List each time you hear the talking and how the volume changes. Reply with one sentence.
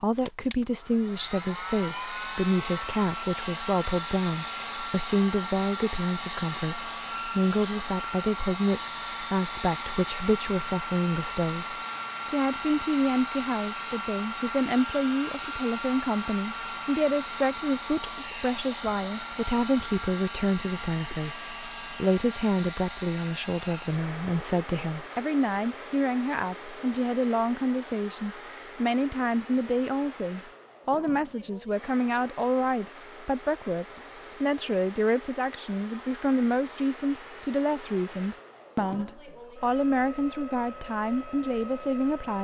The talking can be heard from 0.0 to 42.4 s, at a steady volume.